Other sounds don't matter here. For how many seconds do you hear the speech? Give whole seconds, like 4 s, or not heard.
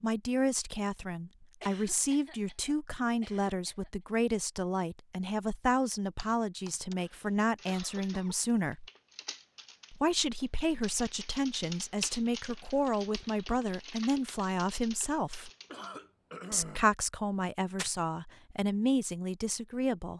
18 s.